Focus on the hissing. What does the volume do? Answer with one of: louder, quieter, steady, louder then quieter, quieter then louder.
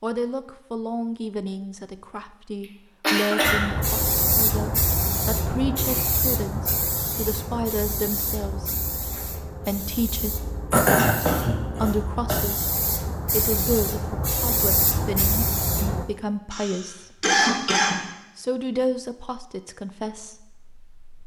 quieter then louder.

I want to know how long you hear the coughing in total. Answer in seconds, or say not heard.
4 s.